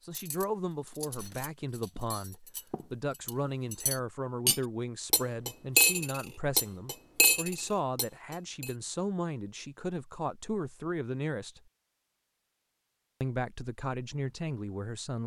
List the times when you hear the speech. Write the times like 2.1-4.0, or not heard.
0.0-11.6, 13.2-15.2.